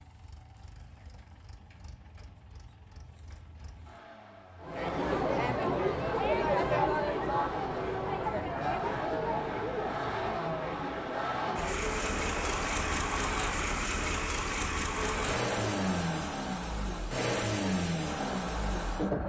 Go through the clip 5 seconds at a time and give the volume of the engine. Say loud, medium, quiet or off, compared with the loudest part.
quiet, medium, loud, loud.